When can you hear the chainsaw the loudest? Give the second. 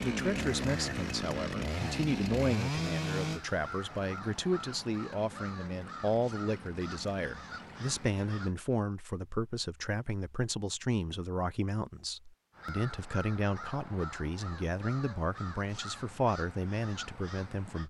3 s.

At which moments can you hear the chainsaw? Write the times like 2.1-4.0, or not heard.
0.0-8.2.